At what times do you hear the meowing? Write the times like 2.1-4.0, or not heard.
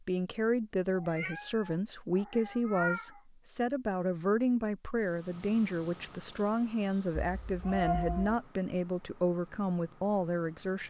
0.9-3.2, 7.4-8.4.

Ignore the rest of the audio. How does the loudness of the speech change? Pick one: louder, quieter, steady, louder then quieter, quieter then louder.
steady.